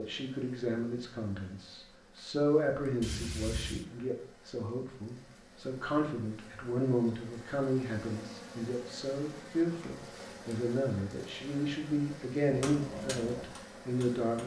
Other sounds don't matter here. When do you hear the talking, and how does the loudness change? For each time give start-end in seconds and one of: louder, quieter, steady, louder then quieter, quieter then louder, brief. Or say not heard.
0.0-14.4 quieter then louder.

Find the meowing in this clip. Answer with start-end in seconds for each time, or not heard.
3.0-3.9.